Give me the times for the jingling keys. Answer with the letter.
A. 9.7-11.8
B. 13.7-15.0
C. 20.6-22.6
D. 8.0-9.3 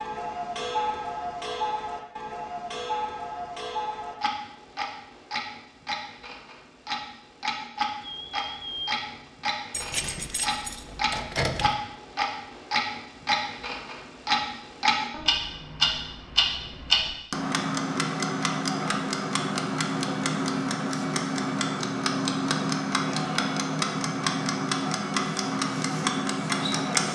A.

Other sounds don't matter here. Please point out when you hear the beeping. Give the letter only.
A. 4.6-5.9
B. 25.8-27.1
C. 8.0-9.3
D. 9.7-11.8
C.